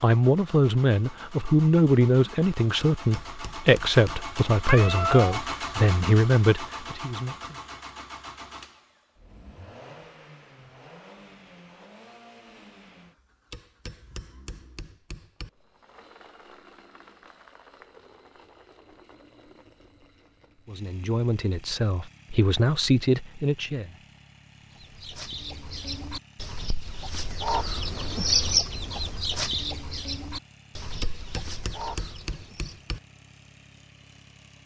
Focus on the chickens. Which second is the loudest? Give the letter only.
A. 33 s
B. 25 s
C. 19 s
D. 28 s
D.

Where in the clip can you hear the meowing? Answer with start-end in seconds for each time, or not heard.
4.7-5.4.